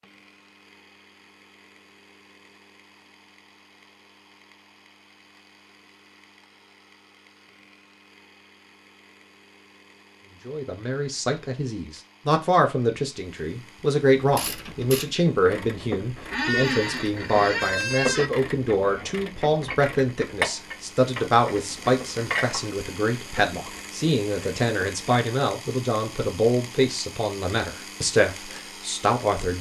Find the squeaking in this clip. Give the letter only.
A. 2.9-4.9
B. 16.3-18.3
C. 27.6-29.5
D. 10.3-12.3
B.